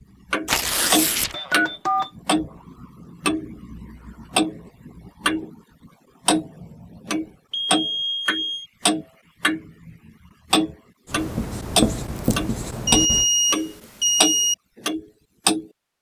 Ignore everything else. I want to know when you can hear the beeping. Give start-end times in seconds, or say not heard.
1.3-2.1, 7.5-8.7, 12.8-14.6.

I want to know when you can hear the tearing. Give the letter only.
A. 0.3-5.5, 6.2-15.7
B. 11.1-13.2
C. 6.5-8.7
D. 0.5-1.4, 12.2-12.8
D.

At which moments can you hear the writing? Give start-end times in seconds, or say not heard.
11.1-13.2.